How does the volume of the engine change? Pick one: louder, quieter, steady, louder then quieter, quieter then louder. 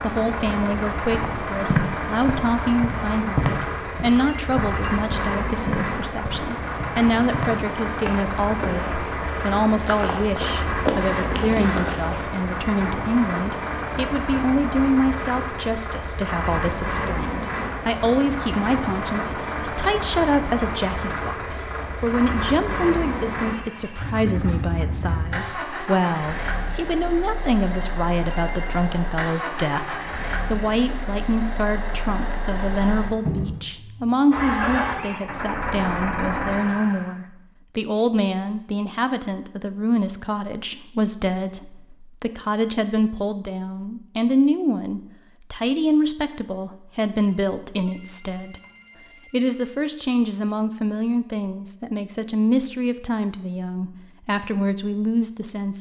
steady.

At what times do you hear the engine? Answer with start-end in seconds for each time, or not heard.
0.0-37.1.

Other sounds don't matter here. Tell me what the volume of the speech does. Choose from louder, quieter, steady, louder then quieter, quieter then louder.
steady.